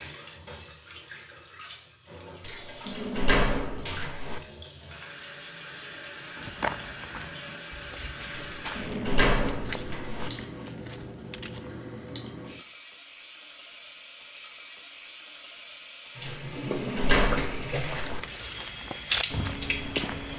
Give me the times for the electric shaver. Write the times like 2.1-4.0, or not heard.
not heard.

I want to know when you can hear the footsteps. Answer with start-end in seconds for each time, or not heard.
6.4-11.7, 17.8-20.3.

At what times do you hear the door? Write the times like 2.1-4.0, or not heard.
2.4-4.4, 8.3-10.3, 16.2-18.2.